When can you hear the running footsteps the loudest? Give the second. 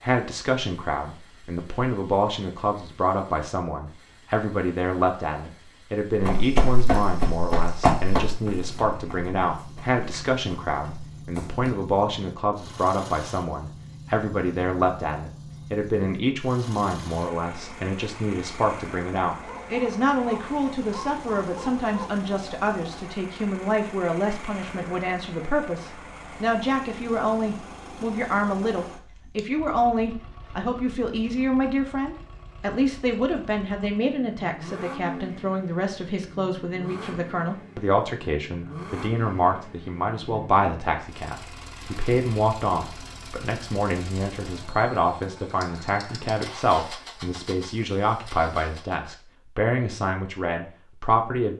8 s.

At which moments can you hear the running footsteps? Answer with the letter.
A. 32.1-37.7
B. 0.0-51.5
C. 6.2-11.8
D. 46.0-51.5
C.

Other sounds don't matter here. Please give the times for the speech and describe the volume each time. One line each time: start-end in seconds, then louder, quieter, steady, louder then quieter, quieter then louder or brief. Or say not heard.
0.0-51.5 steady.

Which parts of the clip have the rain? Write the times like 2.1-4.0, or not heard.
not heard.